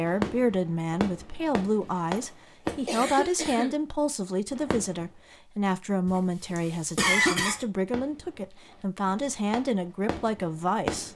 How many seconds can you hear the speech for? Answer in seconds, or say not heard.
11 s.